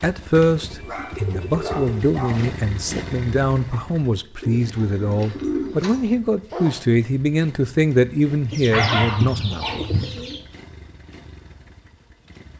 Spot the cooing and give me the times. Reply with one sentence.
You can hear the cooing from 0.4 to 2.0 s, from 4.4 to 6.2 s and from 8.5 to 10.4 s.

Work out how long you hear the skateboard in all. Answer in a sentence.
You can't hear the skateboard here.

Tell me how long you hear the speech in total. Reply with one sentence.
The speech can be heard for 10 seconds in total.